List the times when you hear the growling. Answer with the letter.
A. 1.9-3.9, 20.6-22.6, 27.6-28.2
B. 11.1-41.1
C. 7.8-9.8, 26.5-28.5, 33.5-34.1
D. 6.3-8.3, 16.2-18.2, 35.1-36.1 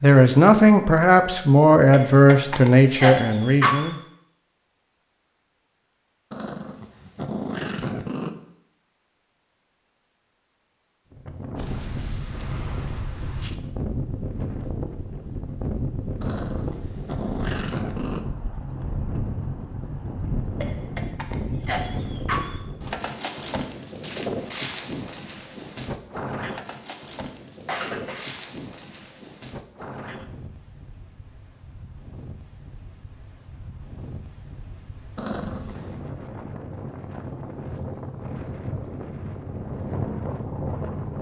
D.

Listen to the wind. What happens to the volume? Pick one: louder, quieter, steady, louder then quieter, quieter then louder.
quieter then louder.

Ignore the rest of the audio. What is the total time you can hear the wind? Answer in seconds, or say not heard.
30 s.